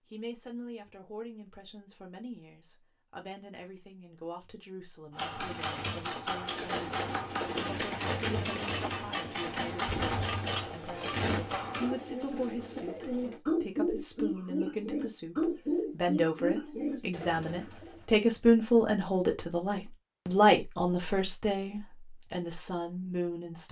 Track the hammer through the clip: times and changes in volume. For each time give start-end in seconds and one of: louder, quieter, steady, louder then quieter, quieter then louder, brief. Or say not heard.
5.1-11.9 steady.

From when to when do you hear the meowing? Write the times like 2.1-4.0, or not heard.
not heard.